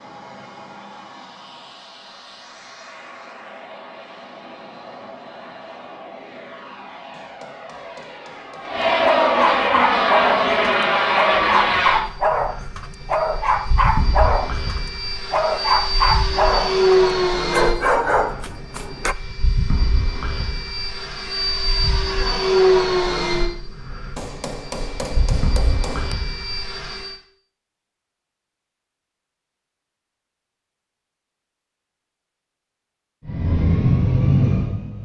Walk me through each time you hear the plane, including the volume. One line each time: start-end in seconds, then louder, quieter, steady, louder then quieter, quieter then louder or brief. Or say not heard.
0.0-27.1 louder
33.2-35.0 brief.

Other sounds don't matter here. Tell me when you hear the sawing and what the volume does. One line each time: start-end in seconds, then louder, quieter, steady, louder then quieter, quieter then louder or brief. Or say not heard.
not heard.